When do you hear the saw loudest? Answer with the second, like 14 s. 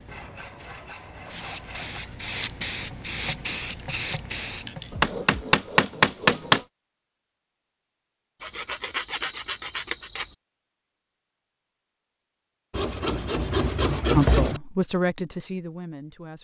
14 s.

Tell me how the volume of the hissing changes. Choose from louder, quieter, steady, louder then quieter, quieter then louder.
louder.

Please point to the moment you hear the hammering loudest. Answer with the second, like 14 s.
6 s.